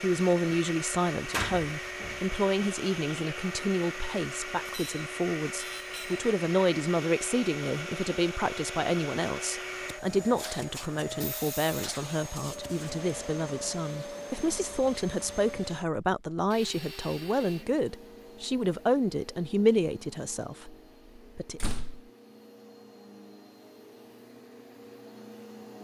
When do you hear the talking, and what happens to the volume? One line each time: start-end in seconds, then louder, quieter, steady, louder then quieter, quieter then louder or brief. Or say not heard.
0.0-21.6 steady.